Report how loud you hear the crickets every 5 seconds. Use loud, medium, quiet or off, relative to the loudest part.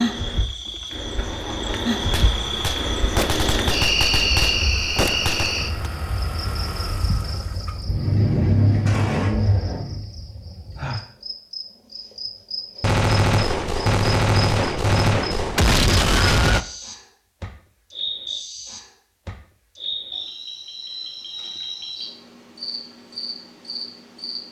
loud, medium, medium, medium, medium.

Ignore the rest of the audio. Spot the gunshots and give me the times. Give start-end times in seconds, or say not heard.
2.1-5.8, 12.8-16.6.